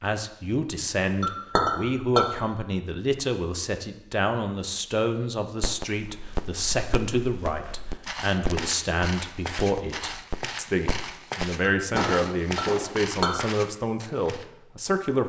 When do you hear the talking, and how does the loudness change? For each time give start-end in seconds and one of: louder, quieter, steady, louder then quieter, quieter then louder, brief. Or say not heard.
0.0-15.2 steady.